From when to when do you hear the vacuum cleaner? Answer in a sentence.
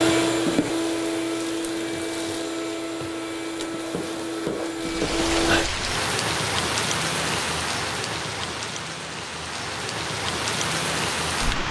You can hear the vacuum cleaner from 0.0 to 5.7 s.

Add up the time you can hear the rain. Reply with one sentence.
You can hear the rain for 7 seconds altogether.